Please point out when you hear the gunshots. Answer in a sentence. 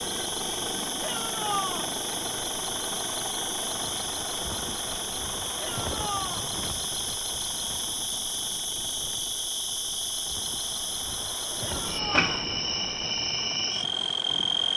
The gunshots can't be heard in this clip.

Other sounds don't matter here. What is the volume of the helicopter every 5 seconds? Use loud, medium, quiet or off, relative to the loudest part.
loud, medium, medium.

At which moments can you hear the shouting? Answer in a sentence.
The shouting can be heard from 1.0 to 1.9 s, from 5.5 to 6.5 s and from 11.6 to 12.3 s.